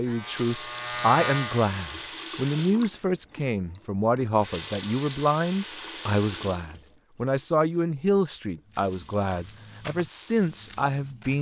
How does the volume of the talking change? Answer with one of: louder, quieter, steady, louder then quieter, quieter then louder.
steady.